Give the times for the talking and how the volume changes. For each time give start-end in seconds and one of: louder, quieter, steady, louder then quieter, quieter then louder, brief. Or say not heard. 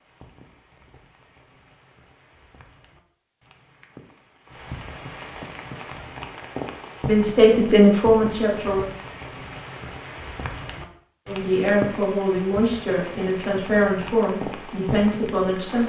7.0-8.8 brief
11.2-15.8 steady.